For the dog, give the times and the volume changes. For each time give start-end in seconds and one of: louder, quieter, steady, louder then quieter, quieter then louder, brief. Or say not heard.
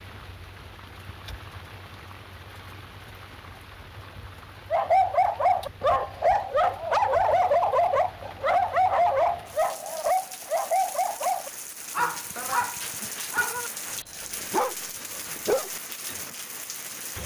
4.7-16.4 quieter.